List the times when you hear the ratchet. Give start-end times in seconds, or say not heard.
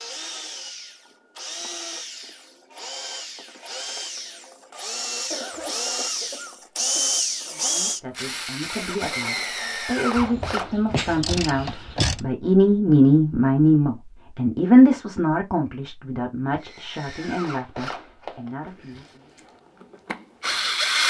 10.2-12.2.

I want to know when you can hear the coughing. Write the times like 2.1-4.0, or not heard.
5.3-7.1.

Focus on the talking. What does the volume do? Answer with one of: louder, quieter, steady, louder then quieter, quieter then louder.
louder then quieter.